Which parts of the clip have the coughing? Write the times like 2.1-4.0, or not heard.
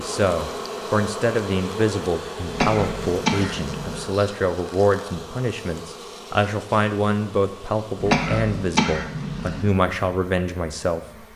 2.5-4.0, 8.0-9.7.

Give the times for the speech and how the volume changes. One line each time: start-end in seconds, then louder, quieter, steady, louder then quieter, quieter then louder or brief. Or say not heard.
0.0-11.2 steady.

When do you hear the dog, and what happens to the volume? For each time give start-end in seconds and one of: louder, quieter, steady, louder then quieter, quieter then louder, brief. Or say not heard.
not heard.